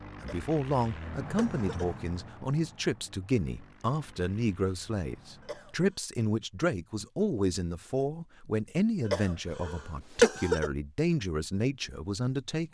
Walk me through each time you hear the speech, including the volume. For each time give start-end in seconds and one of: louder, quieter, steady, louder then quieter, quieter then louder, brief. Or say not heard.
0.2-12.7 steady.